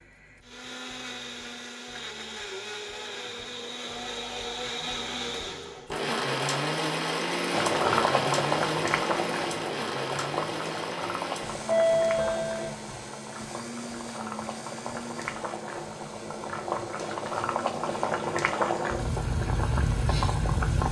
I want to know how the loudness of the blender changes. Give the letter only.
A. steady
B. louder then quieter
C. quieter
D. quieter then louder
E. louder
B.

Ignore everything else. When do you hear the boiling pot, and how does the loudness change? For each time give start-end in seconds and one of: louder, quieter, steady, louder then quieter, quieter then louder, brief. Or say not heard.
7.5-20.8 quieter then louder.